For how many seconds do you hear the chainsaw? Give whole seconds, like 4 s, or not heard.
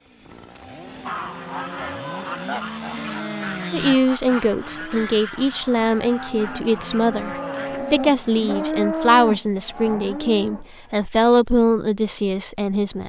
4 s.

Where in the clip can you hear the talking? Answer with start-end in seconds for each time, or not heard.
3.7-13.0.